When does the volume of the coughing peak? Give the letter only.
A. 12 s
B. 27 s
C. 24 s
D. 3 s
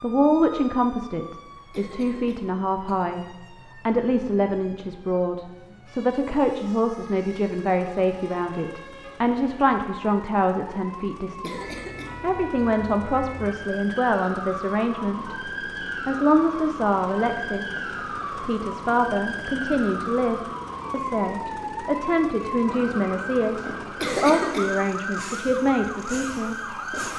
C.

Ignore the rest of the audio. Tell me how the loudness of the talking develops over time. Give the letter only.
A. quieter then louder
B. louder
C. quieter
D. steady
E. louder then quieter
D.